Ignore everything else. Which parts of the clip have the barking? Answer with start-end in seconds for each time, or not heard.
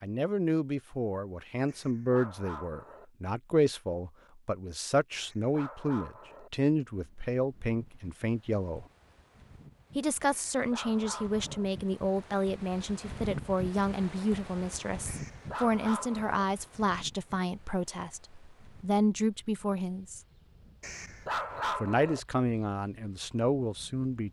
1.6-3.0, 5.1-6.5, 10.2-11.7, 15.1-16.4, 20.8-22.2.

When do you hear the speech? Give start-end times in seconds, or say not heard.
0.0-8.8, 9.9-20.2, 21.8-24.2.